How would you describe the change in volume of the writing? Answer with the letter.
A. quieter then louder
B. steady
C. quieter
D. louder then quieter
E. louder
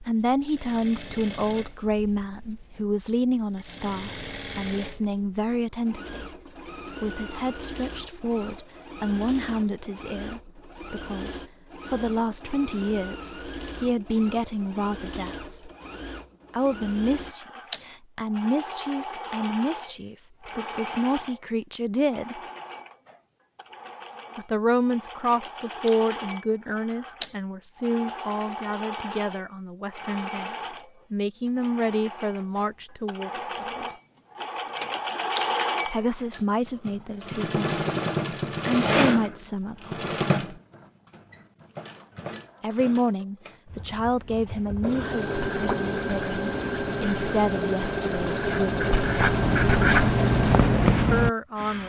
E.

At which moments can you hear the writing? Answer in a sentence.
The writing can be heard from 43.6 to 51.3 s.